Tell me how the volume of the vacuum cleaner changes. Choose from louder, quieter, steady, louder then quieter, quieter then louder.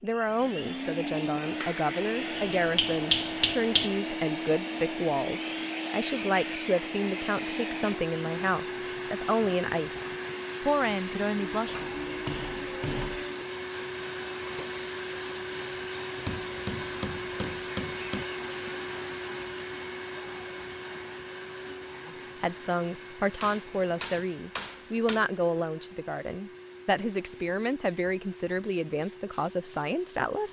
quieter.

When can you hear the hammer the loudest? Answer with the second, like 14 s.
3 s.